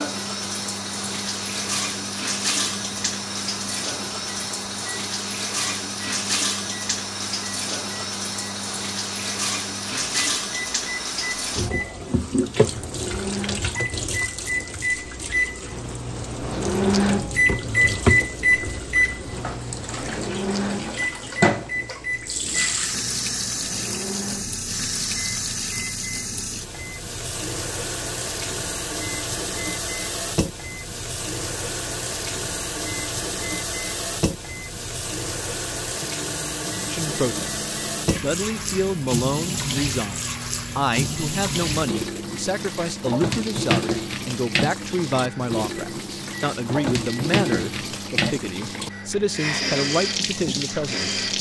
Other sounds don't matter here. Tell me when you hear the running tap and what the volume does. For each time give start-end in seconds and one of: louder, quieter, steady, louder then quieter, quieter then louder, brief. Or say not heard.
0.0-51.3 steady.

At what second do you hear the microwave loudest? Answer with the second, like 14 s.
17 s.